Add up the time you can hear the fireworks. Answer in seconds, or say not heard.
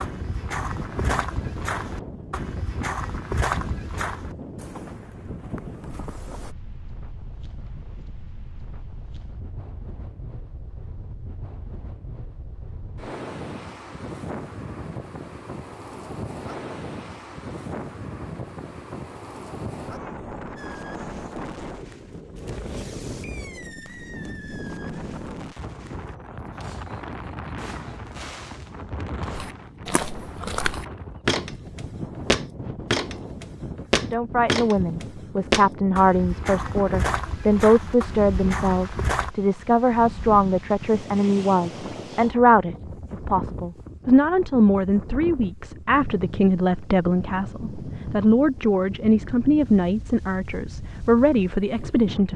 9 s.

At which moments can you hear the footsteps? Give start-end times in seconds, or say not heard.
0.0-6.5, 29.3-39.3.